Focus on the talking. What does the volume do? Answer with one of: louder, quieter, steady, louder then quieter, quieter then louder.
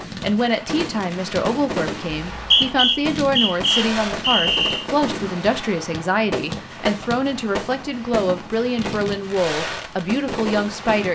steady.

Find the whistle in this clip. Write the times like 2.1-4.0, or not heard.
2.2-4.8.